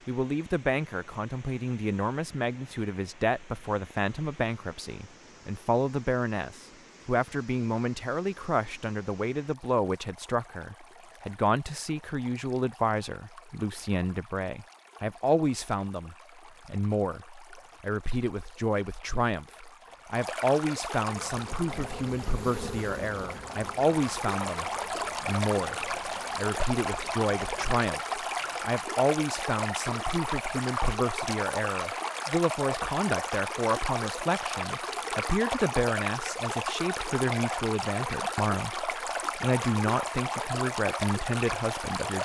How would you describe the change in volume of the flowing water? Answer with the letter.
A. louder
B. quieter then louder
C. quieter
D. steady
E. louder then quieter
A.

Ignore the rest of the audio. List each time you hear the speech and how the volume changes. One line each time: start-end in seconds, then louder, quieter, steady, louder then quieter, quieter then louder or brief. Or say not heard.
0.1-42.1 steady.